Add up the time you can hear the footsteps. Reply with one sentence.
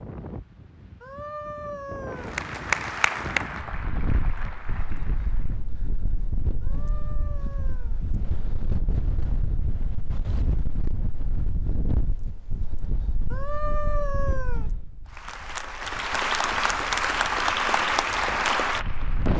The footsteps can't be heard in this clip.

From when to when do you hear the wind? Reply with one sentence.
The wind can be heard from 0.0 to 19.3 s.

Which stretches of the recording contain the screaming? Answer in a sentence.
The screaming can be heard from 1.0 to 2.4 s, from 6.6 to 8.0 s and from 13.3 to 14.7 s.